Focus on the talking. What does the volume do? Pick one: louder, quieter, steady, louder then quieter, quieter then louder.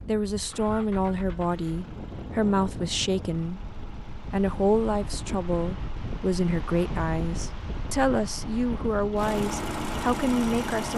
steady.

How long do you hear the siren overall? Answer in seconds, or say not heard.
not heard.